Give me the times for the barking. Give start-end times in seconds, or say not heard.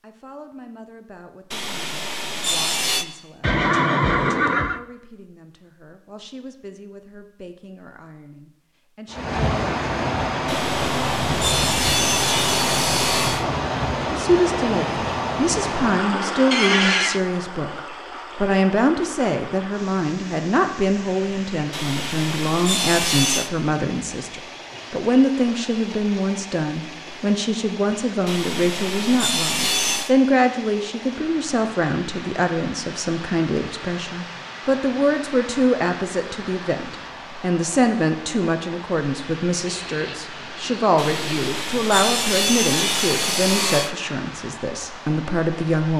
not heard.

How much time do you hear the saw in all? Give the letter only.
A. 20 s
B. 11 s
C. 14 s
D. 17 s
B.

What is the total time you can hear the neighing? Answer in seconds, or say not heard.
4 s.